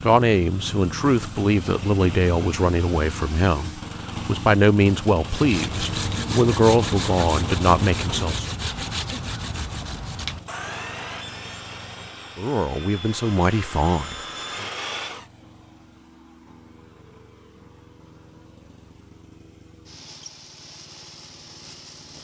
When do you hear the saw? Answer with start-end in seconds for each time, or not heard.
5.2-15.3.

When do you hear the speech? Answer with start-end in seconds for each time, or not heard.
0.0-8.5, 12.3-14.7.